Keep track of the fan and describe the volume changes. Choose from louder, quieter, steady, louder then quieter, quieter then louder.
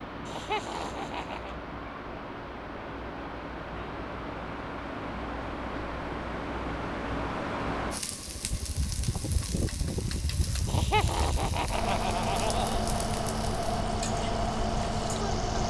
louder.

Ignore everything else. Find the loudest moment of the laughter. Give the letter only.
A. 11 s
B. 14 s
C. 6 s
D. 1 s
A.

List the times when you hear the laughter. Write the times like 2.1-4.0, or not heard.
0.2-1.6, 10.7-12.8.